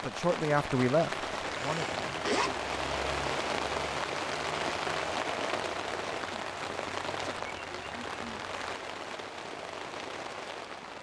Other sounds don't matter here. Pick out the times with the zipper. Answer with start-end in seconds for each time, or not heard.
1.4-2.5.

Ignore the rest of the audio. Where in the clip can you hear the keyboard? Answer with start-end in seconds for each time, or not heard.
not heard.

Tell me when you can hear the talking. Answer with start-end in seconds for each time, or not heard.
0.0-2.6.